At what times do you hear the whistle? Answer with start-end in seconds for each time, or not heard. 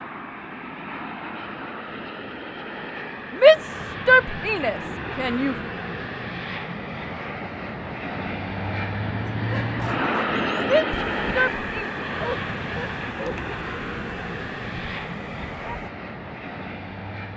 not heard.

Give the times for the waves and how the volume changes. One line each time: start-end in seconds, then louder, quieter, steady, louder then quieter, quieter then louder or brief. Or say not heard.
not heard.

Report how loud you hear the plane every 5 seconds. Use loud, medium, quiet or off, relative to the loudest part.
medium, loud, loud, medium.